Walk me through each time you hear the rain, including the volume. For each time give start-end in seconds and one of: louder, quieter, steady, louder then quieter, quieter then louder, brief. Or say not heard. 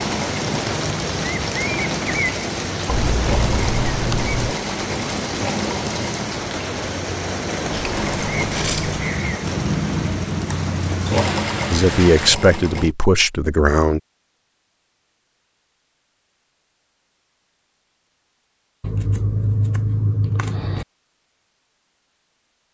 0.0-12.3 quieter.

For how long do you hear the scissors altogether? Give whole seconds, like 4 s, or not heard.
5 s.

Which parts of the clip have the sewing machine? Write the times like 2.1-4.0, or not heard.
0.0-12.9.